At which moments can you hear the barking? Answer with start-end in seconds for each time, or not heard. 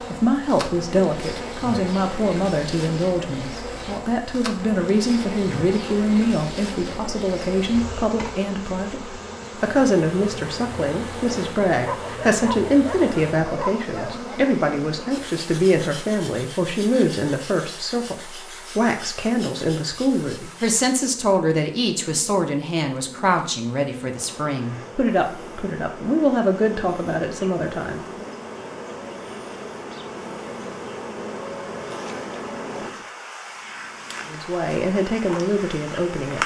11.7-14.4.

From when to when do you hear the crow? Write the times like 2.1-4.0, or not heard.
not heard.